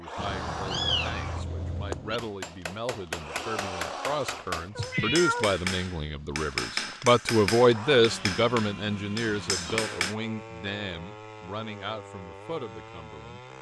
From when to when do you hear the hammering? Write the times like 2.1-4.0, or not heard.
2.1-10.2.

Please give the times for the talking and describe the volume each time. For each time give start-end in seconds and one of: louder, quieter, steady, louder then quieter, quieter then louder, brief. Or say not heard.
0.0-13.4 louder then quieter.